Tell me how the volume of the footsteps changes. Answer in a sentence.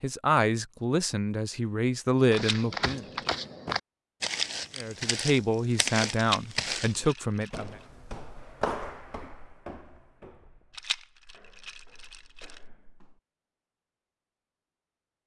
The volume of the footsteps goes down.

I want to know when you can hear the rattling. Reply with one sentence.
The rattling can be heard from 2.3 to 3.3 s, from 6.2 to 7.7 s and from 10.7 to 12.6 s.